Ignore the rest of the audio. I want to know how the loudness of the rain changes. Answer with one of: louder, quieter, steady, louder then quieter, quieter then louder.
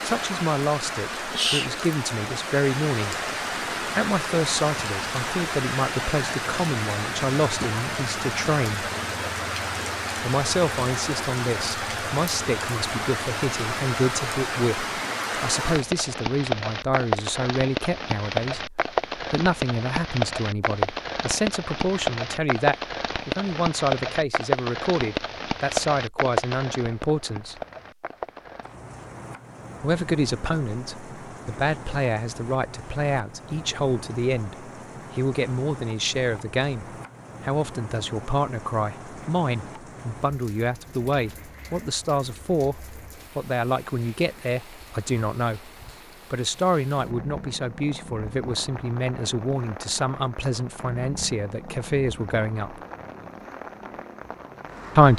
quieter.